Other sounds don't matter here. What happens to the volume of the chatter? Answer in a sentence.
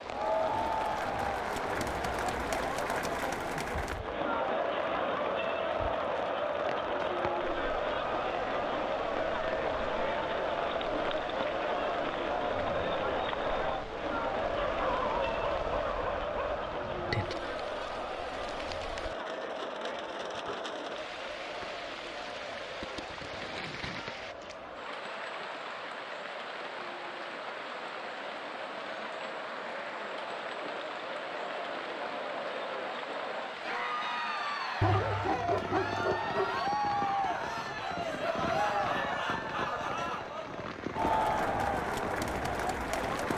The volume of the chatter goes down, then up.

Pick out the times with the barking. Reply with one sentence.
You can hear the barking from 14.7 to 16.6 s and from 34.8 to 36.6 s.